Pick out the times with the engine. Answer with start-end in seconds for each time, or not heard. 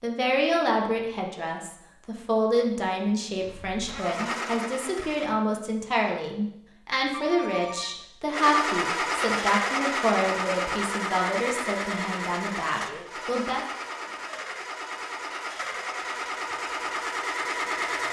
3.4-5.3, 8.3-18.0.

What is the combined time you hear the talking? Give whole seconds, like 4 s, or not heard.
14 s.